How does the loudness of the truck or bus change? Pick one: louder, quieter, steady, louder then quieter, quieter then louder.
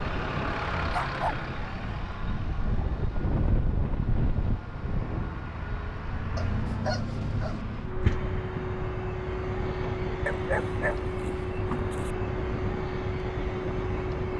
quieter then louder.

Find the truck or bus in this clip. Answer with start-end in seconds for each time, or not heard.
0.0-14.3.